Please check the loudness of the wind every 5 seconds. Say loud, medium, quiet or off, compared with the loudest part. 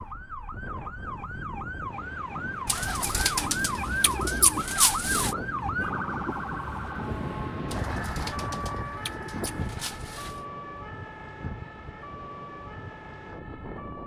medium, loud, medium.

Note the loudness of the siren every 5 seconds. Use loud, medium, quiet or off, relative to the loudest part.
loud, loud, medium.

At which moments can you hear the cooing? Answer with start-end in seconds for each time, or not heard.
2.6-5.3, 7.7-10.4.